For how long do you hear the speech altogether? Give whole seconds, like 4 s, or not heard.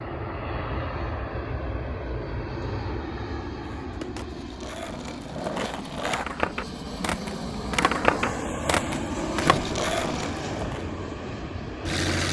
not heard.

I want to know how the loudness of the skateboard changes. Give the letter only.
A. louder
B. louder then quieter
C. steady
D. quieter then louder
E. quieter
A.